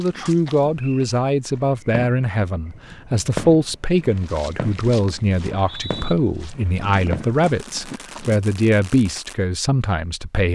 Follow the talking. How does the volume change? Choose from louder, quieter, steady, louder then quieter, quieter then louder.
steady.